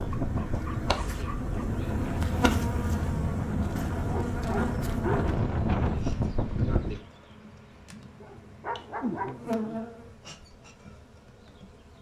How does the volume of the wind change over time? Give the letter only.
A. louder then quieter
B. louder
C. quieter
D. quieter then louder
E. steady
B.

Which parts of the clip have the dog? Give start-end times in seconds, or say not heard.
0.1-1.9, 4.0-5.3, 8.2-9.8.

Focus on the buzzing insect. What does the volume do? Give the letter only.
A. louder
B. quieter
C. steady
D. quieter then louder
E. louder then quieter
D.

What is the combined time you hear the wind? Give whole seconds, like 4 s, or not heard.
7 s.